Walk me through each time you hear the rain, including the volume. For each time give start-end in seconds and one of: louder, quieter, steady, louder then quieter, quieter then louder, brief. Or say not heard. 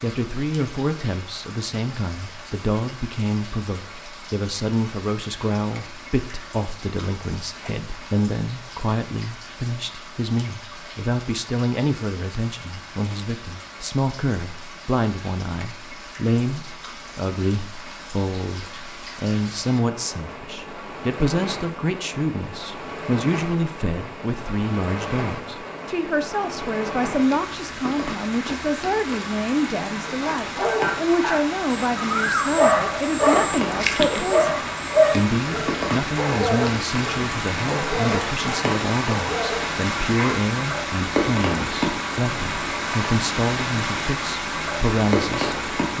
0.0-45.9 louder.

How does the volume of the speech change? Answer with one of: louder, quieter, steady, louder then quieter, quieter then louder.
steady.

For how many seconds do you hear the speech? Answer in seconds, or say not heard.
46 s.